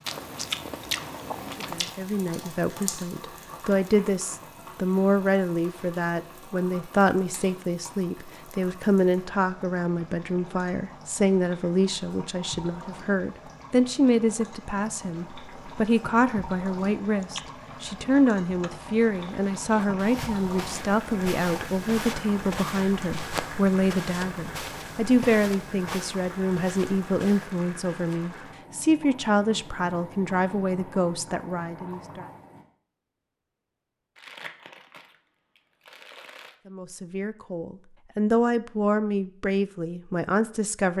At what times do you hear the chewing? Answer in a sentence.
The chewing can be heard from 0.1 to 1.9 s, from 17.1 to 18.8 s and from 34.1 to 36.5 s.